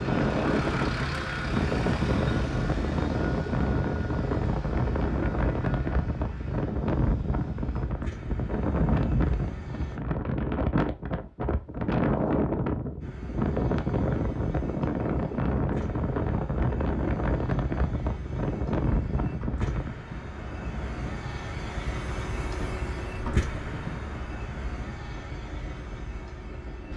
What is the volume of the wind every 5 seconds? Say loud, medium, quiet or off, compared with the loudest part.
loud, loud, loud, loud, quiet, quiet.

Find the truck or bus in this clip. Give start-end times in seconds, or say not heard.
0.0-10.0, 13.0-26.9.